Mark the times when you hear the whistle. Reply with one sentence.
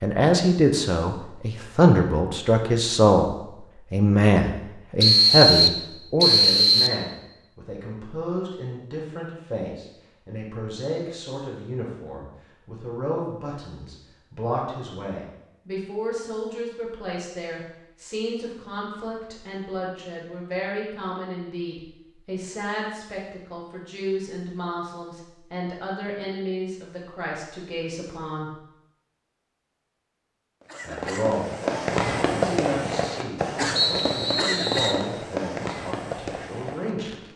The whistle can be heard from 5.0 to 7.0 s and from 33.8 to 35.0 s.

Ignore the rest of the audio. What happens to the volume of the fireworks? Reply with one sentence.
The volume of the fireworks goes down.